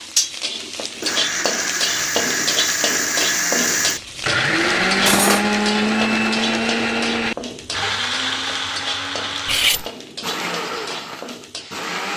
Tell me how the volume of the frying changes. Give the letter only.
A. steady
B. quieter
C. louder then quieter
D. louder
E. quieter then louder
B.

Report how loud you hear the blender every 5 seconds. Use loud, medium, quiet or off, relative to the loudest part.
loud, loud, medium.